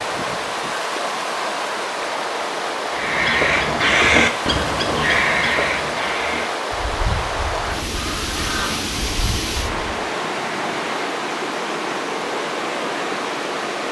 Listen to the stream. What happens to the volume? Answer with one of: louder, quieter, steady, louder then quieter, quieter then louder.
steady.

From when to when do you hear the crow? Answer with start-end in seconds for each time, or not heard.
2.9-10.0.